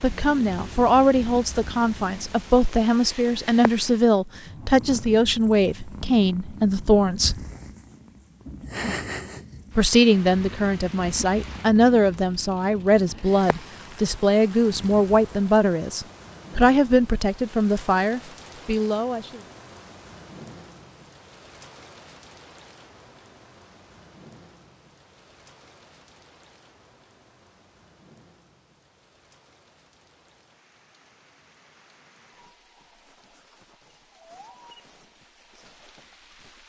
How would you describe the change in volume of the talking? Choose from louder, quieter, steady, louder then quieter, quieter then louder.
steady.